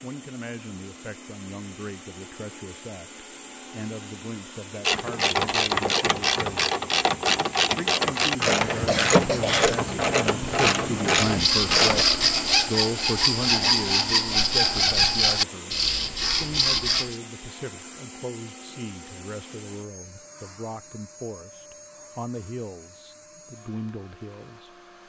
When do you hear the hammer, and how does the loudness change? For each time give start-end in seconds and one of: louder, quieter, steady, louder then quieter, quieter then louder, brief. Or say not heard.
not heard.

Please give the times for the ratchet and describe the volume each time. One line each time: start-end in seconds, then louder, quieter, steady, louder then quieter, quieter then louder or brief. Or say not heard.
4.8-12.1 steady.